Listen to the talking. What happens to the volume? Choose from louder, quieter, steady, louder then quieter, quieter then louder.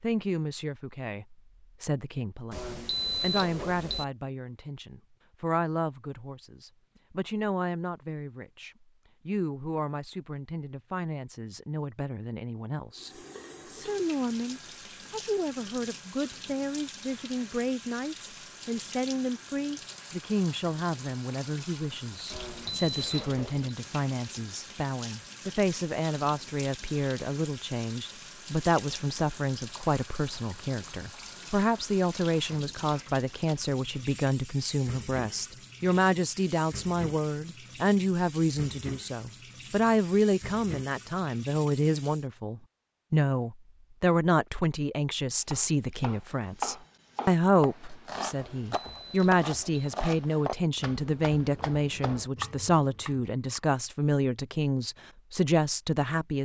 louder.